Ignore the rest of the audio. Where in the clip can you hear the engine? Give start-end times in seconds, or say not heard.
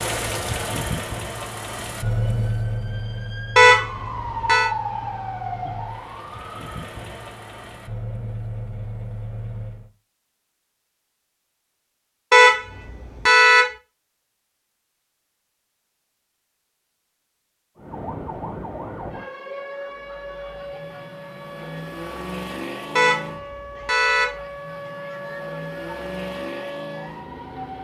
0.0-9.9, 19.9-27.7.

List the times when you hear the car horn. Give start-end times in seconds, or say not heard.
3.5-4.7, 12.3-13.7, 22.9-24.4.